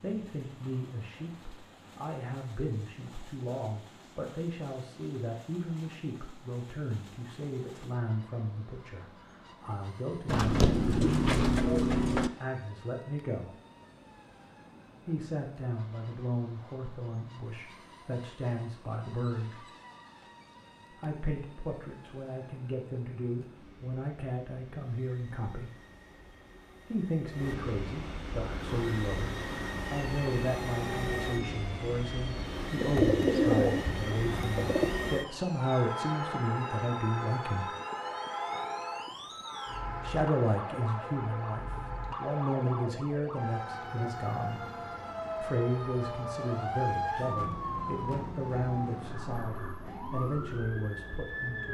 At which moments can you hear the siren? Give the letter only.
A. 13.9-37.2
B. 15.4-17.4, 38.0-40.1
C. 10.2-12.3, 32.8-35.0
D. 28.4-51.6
D.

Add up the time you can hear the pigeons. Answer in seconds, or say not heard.
4 s.